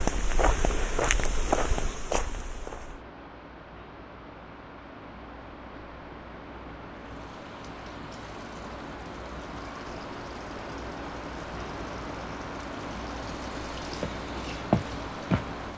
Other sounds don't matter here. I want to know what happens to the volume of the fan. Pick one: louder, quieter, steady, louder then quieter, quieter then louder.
louder.